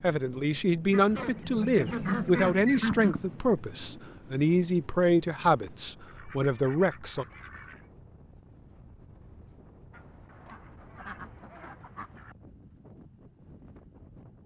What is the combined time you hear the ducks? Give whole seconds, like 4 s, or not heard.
7 s.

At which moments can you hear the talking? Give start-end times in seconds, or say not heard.
0.0-7.2.